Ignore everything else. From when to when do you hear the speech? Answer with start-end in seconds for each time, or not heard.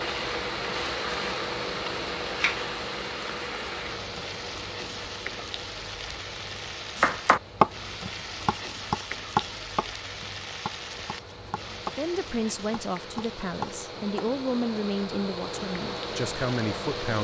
11.9-17.2.